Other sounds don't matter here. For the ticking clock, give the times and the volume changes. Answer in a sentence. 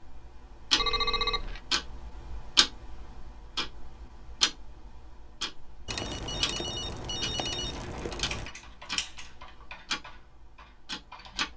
The ticking clock can be heard from 0.0 to 11.5 s, getting quieter.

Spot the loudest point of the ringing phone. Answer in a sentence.
The volume of the ringing phone peaks at 1 second.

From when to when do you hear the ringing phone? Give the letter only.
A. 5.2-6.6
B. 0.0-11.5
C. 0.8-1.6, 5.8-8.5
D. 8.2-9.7
C.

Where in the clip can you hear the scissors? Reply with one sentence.
The scissors can be heard from 8.2 to 9.7 s.